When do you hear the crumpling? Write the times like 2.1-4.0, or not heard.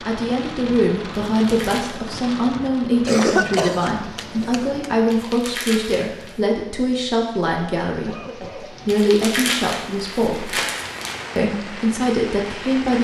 1.4-1.9, 5.1-6.4, 8.8-11.2.